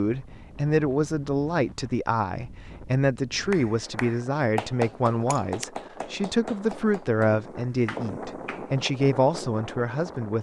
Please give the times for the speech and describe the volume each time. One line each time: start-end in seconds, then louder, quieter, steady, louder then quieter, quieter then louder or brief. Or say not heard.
0.0-10.3 steady.